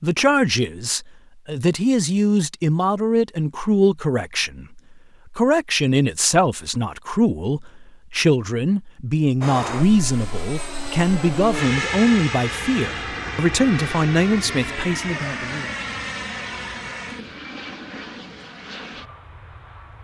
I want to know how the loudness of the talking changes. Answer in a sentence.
The volume of the talking stays about the same.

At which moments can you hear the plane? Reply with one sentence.
The plane can be heard from 9.4 to 19.9 s.